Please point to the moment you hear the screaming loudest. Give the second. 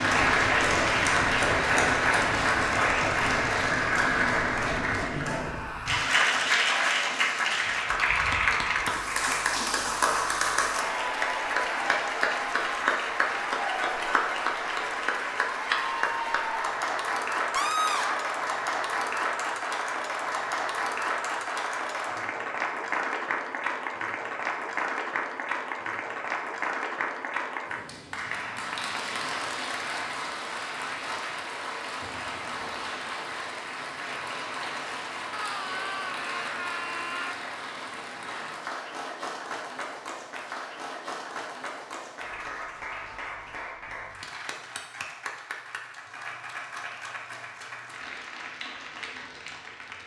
18 s.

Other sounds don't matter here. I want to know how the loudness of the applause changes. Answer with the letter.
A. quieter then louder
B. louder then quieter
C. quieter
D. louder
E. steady
C.